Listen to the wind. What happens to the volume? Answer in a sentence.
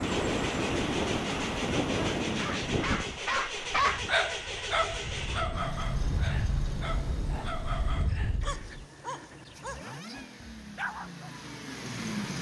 The loudness of the wind goes down, then up.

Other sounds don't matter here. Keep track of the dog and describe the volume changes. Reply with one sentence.
The loudness of the dog goes down.